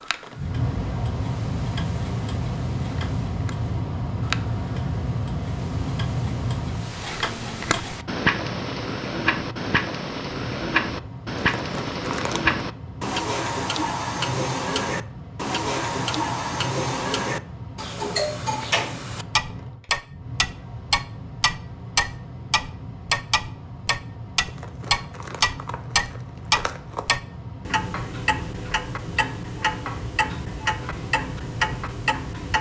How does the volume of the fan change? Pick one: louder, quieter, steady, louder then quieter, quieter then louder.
quieter.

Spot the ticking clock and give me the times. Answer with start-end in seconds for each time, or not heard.
0.0-32.5.